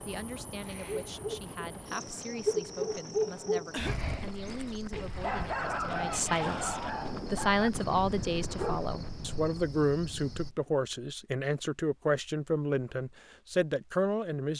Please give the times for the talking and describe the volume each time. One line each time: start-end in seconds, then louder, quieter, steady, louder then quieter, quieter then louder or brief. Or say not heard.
0.1-14.5 louder.